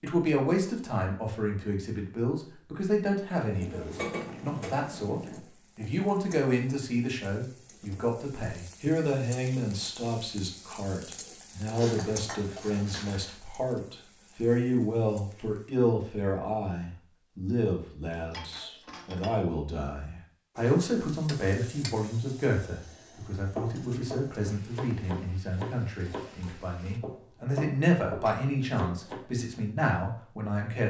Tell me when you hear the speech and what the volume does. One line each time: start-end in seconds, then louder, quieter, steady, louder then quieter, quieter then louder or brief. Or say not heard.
0.0-30.8 steady.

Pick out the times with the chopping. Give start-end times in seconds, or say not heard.
11.4-13.3, 23.4-29.2.